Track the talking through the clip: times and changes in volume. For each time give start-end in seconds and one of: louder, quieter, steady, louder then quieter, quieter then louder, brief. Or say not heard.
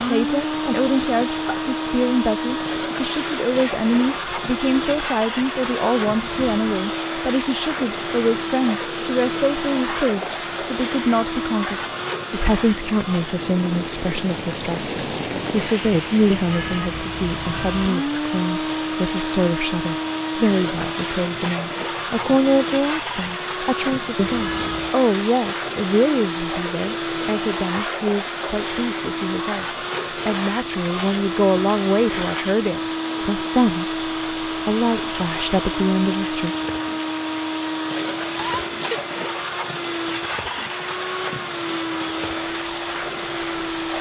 0.1-36.5 steady.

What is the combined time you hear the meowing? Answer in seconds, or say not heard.
2 s.